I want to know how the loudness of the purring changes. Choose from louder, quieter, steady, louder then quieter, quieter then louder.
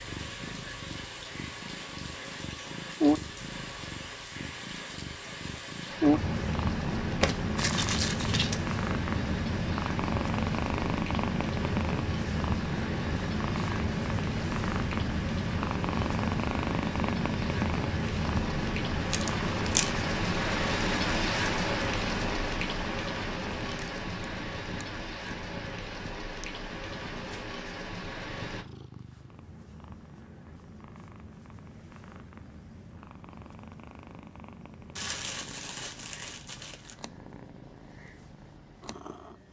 quieter.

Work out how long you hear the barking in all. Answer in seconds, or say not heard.
not heard.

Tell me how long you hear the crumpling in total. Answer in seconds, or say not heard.
4 s.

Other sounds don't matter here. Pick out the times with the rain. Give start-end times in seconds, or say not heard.
0.0-28.6.